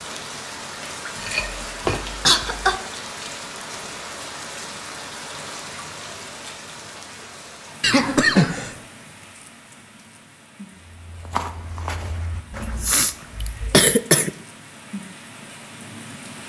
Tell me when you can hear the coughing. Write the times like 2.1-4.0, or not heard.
1.1-2.8, 7.8-8.8, 12.5-14.3.